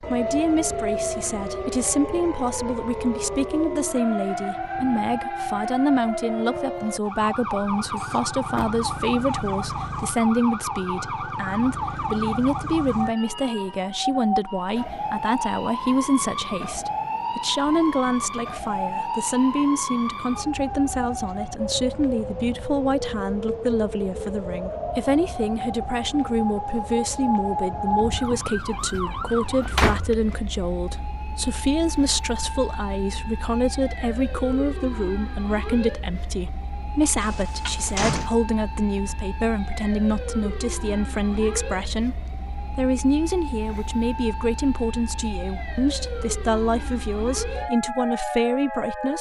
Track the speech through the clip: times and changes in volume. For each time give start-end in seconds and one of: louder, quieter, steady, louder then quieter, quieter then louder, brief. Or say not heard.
0.0-49.1 steady.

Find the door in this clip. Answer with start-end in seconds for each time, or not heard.
8.0-8.7, 29.3-30.0, 37.2-38.4.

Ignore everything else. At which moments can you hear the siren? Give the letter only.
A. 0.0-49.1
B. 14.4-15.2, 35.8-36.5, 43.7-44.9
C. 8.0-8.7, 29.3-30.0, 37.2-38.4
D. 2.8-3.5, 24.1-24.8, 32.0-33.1
A.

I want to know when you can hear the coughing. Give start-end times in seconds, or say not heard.
not heard.